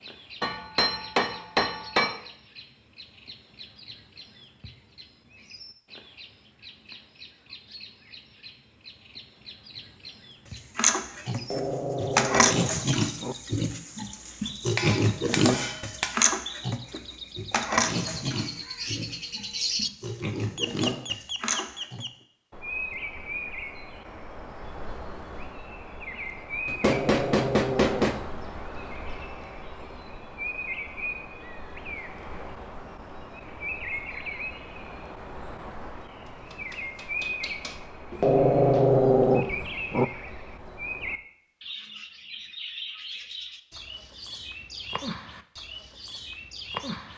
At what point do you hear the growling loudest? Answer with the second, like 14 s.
39 s.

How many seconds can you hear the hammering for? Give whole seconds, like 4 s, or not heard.
6 s.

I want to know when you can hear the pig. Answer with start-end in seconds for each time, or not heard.
10.8-22.1.